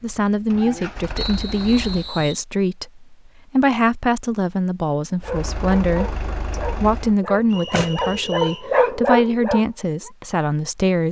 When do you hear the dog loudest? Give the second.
9 s.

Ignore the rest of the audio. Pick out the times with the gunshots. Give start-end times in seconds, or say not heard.
7.5-8.3.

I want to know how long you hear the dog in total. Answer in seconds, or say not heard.
5 s.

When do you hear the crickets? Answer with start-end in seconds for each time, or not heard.
not heard.